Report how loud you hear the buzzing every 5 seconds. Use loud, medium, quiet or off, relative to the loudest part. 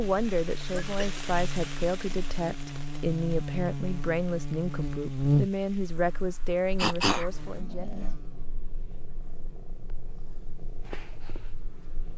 medium, loud, quiet.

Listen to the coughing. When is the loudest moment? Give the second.
7 s.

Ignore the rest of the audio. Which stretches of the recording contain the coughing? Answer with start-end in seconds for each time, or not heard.
0.7-1.2, 6.8-8.1.